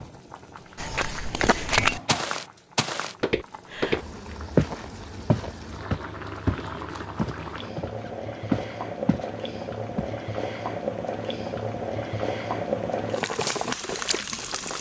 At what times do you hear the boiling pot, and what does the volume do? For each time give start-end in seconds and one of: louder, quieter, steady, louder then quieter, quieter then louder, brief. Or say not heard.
0.0-14.7 louder.